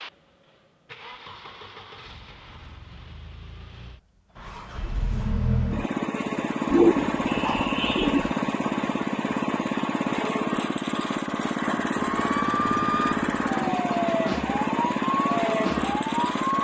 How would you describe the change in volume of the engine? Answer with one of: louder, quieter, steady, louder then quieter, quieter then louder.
louder.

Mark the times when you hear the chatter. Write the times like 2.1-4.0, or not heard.
not heard.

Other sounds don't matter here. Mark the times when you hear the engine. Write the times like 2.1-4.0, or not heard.
0.0-16.5.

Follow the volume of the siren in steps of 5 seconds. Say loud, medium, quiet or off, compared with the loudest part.
off, off, loud, loud.